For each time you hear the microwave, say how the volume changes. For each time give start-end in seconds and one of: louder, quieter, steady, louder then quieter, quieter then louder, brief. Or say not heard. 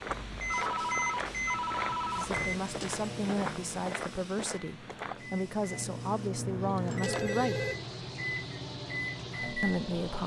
0.0-10.2 quieter then louder.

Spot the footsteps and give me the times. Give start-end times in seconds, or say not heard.
0.0-5.3.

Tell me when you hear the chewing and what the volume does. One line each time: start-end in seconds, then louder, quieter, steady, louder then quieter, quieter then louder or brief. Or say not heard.
not heard.